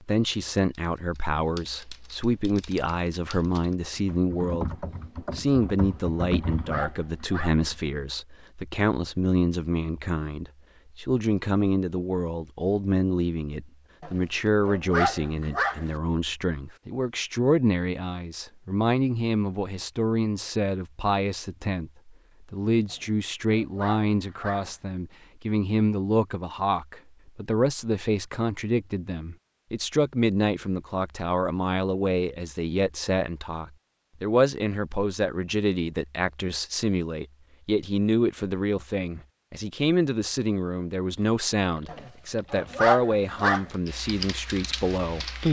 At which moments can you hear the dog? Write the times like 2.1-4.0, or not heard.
5.8-7.7, 14.0-15.9, 22.9-24.8, 41.9-43.7.